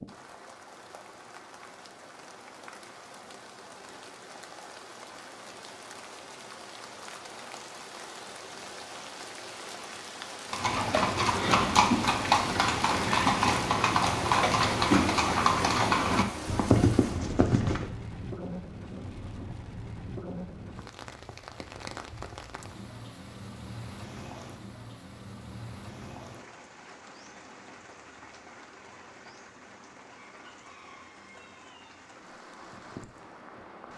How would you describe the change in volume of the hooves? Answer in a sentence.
The volume of the hooves stays about the same.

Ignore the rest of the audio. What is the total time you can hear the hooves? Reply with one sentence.
You can hear the hooves for 7 seconds altogether.